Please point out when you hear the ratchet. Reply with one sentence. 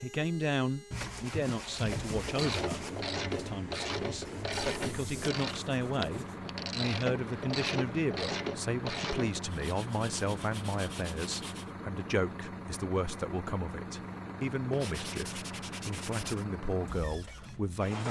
You can hear the ratchet from 1.6 to 9.6 s.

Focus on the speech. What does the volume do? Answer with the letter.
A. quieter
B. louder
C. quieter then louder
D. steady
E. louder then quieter
D.